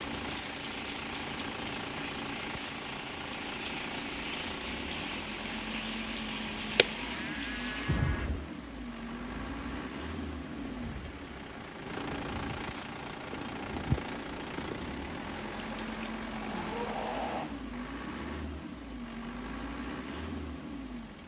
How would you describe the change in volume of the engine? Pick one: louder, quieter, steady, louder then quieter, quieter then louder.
steady.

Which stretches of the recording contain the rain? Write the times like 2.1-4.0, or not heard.
0.0-17.7.